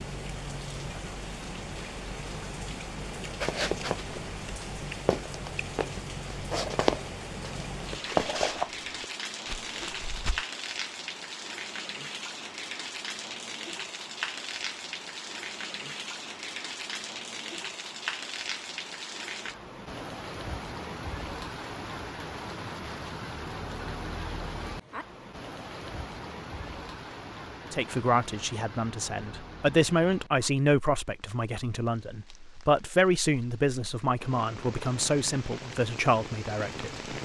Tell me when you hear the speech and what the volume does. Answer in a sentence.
The speech can be heard from 27.7 to 37.1 s, at a steady volume.